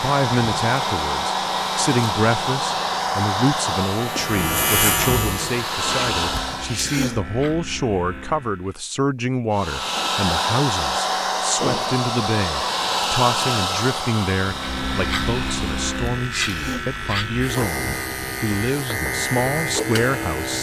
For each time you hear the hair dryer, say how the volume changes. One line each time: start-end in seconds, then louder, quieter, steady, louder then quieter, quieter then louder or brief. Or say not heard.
0.0-6.8 quieter then louder
9.5-15.9 quieter.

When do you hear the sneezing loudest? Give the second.
7 s.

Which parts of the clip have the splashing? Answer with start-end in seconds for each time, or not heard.
not heard.